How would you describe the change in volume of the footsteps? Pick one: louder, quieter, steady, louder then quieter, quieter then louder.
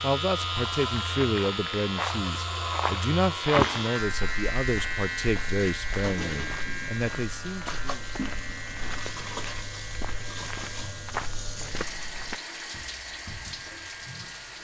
quieter then louder.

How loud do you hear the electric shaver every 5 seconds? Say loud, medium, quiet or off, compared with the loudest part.
loud, medium, quiet.